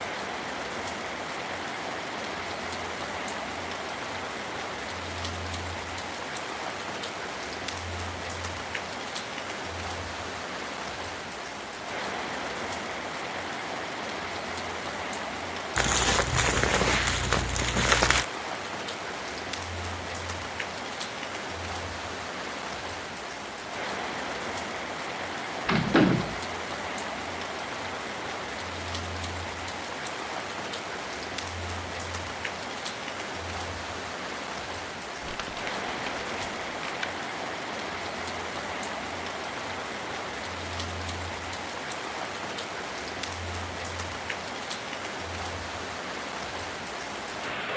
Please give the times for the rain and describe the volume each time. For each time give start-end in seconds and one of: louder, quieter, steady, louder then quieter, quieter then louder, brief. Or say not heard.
0.0-47.7 steady.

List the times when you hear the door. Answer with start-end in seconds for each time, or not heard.
25.6-26.4.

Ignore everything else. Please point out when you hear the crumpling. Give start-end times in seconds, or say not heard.
15.8-18.2, 35.2-37.1.